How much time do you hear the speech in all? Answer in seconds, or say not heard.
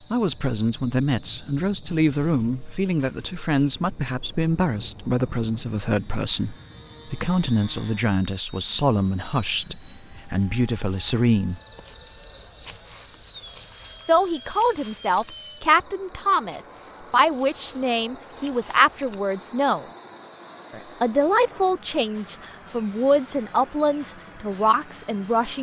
22 s.